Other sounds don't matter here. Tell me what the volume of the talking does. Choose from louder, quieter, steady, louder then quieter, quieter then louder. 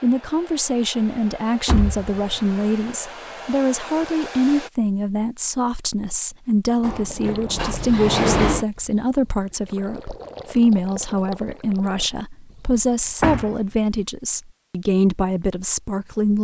steady.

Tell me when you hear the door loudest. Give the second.
8 s.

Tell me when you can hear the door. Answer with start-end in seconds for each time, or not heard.
1.6-2.6, 6.8-8.7, 13.2-14.0.